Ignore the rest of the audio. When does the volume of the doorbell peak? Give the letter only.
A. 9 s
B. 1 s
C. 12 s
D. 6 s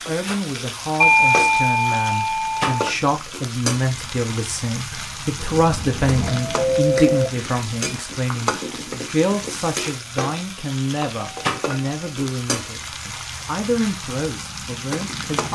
B.